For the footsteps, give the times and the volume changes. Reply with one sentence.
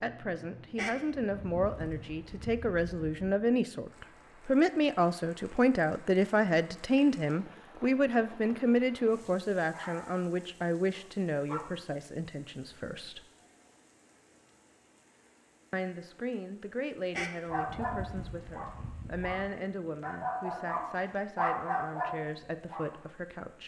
The footsteps can't be heard in this clip.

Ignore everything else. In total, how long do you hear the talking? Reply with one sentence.
You can hear the talking for 21 seconds altogether.